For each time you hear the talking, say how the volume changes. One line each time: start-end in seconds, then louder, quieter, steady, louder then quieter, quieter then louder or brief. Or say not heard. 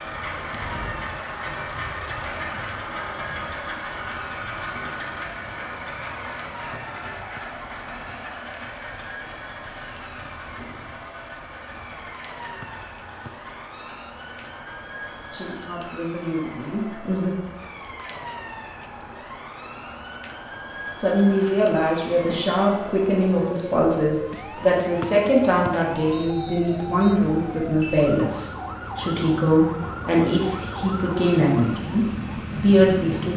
15.3-17.4 brief
20.9-33.3 steady.